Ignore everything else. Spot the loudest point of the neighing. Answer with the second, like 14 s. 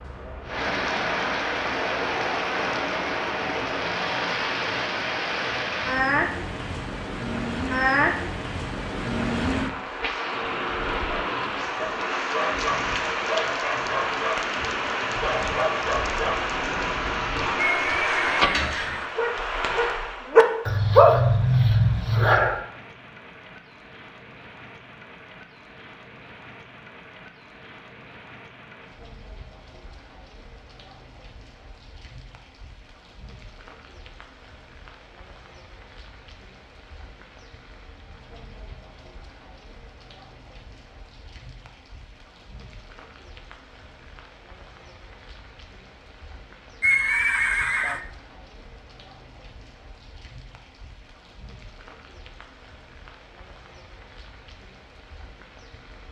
47 s.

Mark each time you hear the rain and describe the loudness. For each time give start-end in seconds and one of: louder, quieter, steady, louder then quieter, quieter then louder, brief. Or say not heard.
0.0-56.0 quieter.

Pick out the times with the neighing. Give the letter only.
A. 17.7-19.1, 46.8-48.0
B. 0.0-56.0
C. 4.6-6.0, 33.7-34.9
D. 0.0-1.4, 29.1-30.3
A.